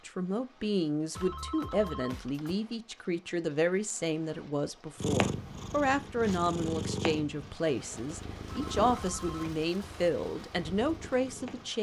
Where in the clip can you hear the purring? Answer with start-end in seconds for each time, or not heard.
5.0-11.7.